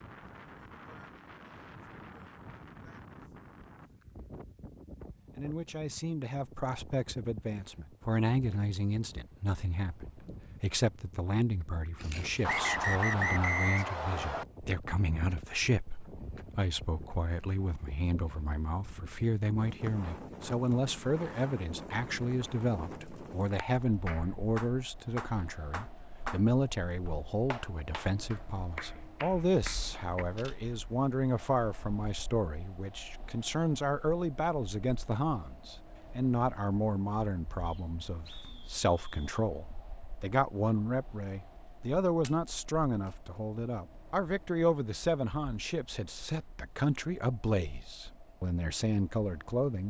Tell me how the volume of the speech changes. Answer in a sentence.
The volume of the speech stays about the same.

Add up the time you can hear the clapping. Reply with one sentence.
You can hear the clapping for 7 seconds altogether.